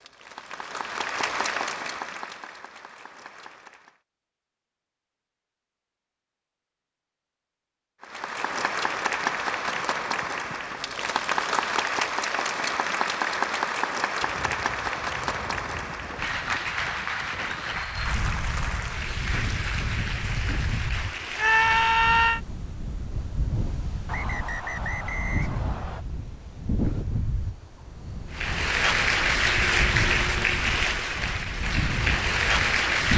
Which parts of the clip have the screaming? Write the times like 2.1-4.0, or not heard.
21.4-22.4.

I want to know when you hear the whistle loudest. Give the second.
25 s.